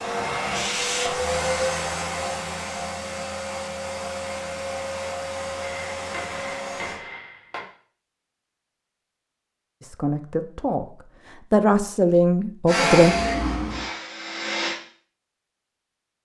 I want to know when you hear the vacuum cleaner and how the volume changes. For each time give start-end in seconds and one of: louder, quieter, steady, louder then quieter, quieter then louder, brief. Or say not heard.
0.0-7.0 quieter
12.7-14.8 brief.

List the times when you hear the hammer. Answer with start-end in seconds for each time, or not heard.
5.6-7.7.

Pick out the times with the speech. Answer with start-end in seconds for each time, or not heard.
9.8-13.2.